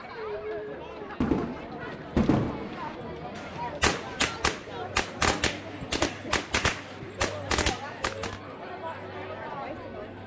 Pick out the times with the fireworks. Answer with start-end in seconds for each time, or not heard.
1.2-8.4.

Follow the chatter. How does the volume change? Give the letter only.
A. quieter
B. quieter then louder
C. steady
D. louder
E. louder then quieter
C.